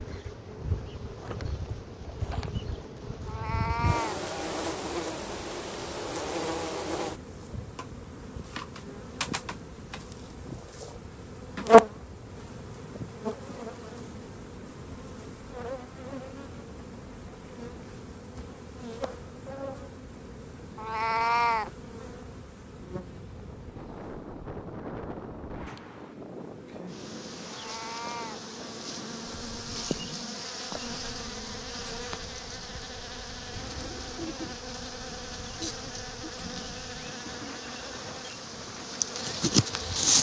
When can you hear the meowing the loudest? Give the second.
21 s.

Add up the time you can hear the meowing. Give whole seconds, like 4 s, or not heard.
3 s.